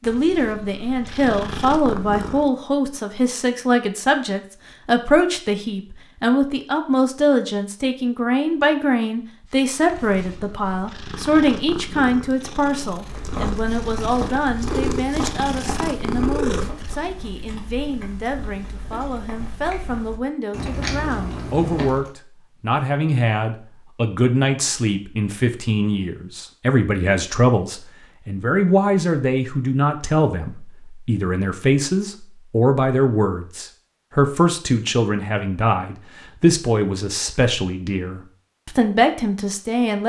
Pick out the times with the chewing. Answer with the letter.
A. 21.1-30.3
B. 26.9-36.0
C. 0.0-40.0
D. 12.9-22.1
D.